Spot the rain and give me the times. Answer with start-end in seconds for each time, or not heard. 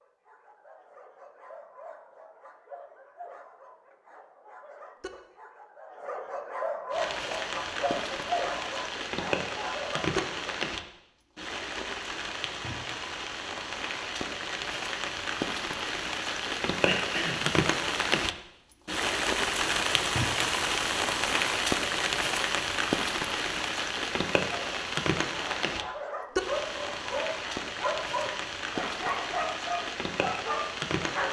6.9-31.2.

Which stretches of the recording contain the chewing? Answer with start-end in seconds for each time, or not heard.
not heard.